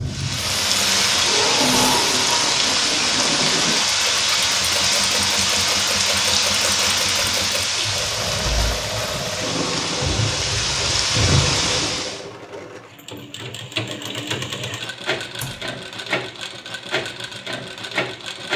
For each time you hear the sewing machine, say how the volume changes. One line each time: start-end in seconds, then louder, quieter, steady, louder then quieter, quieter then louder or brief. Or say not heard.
0.0-18.5 steady.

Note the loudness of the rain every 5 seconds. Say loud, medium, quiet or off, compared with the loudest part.
loud, loud, loud, off.